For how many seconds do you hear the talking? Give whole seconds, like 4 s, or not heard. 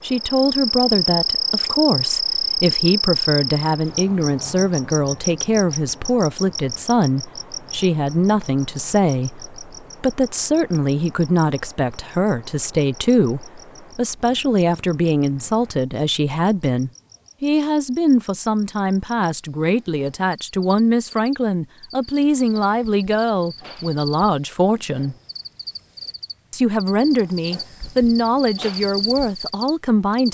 29 s.